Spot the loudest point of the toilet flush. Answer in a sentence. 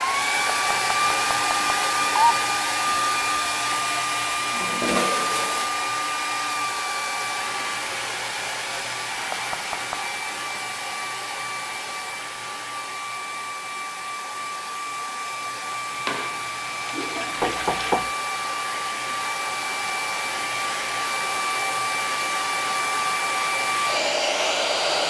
The loudest moment of the toilet flush is at 5 seconds.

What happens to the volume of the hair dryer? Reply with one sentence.
The loudness of the hair dryer goes down, then up.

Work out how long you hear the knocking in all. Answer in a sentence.
You can hear the knocking for 3 seconds altogether.